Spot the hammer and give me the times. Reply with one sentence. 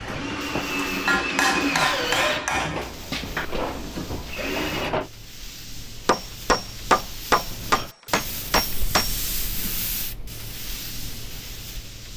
You can hear the hammer from 0.0 to 3.5 s and from 6.0 to 9.2 s.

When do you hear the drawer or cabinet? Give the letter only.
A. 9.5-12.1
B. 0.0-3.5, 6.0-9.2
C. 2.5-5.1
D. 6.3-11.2
C.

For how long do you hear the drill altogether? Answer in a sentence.
You can hear the drill for 5 seconds altogether.